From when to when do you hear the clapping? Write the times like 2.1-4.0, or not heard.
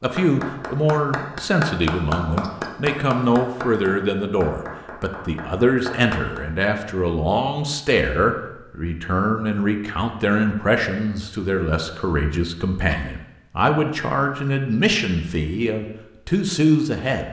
0.1-6.4.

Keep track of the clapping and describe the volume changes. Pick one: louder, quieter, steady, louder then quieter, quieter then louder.
quieter.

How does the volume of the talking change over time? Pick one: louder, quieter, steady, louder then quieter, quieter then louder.
steady.